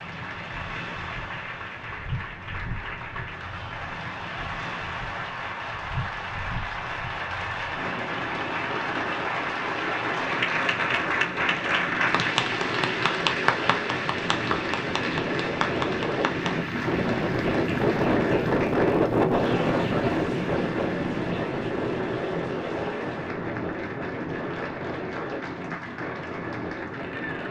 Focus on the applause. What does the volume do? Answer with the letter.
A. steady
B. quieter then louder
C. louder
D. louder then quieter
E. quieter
D.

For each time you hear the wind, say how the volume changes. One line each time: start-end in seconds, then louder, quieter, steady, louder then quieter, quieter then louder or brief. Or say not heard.
0.0-27.4 louder then quieter.